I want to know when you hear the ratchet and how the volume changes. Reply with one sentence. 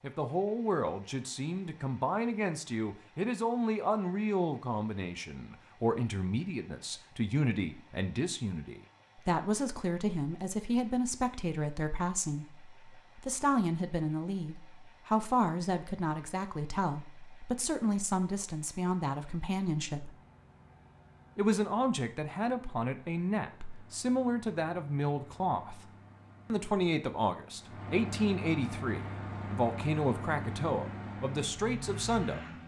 The ratchet can't be heard in this clip.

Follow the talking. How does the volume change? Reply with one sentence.
The loudness of the talking stays about the same.